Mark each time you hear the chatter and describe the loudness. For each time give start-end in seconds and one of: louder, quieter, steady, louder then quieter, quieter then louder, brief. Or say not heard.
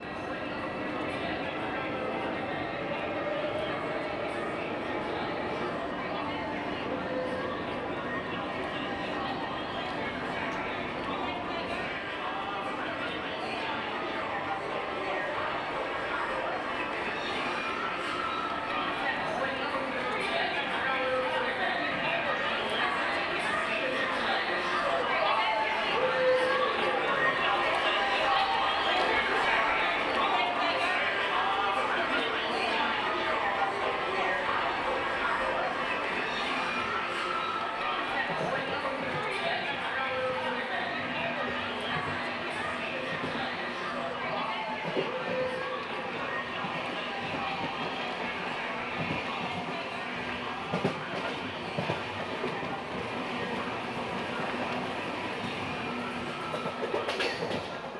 0.0-57.9 louder then quieter.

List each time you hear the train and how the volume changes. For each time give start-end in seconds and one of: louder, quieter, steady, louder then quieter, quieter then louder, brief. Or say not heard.
0.0-57.9 quieter then louder.